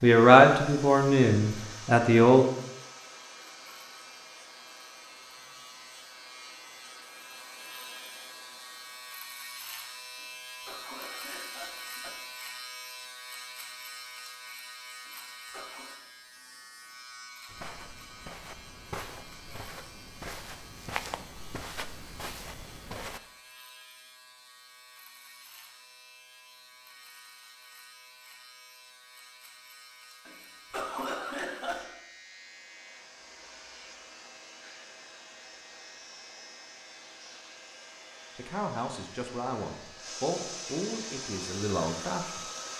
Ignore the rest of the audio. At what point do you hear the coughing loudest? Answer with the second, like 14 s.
31 s.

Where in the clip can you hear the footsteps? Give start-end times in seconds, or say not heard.
17.4-23.2.